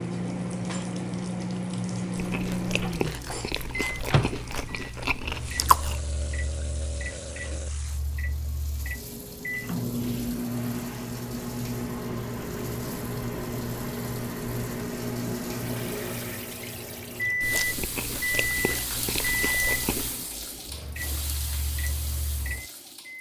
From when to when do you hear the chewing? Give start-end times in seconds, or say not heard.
2.1-6.0, 17.4-20.1.